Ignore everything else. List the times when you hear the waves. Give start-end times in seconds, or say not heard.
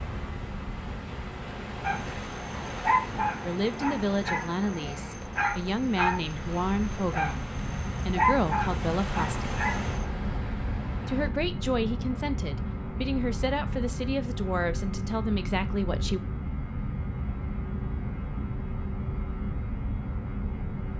0.0-11.3.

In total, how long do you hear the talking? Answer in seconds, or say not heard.
11 s.